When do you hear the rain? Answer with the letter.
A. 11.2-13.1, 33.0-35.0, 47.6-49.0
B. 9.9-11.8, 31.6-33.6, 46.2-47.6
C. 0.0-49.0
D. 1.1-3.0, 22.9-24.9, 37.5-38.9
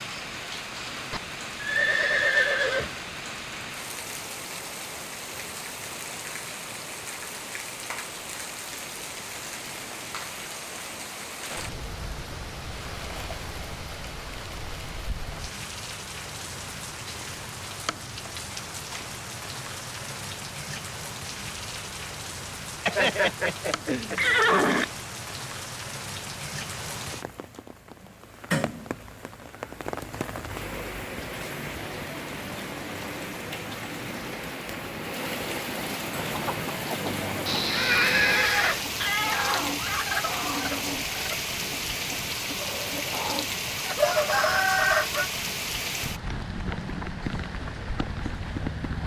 C.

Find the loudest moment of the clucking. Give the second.
45 s.